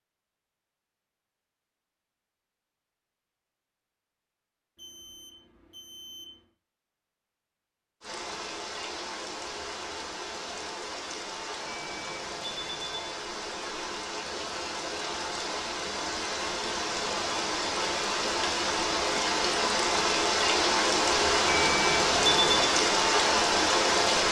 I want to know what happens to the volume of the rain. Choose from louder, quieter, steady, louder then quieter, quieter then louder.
louder.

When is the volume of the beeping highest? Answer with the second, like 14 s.
22 s.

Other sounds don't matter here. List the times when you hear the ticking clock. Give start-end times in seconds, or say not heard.
not heard.